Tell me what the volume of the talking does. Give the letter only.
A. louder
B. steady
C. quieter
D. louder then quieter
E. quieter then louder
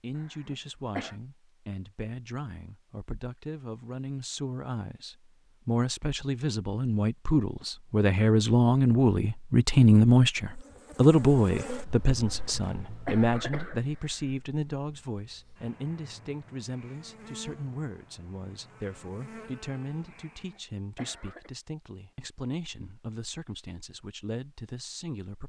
D.